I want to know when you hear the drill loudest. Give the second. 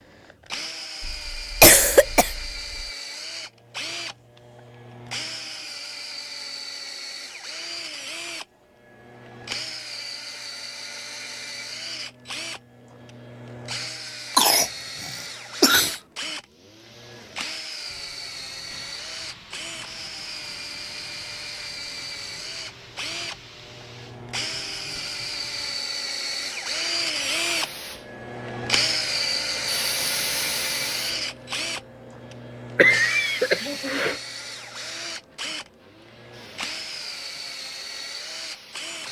29 s.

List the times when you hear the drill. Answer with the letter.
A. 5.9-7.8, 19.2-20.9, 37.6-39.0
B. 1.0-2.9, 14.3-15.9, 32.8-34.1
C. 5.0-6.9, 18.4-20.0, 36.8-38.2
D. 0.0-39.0
D.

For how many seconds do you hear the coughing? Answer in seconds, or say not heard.
5 s.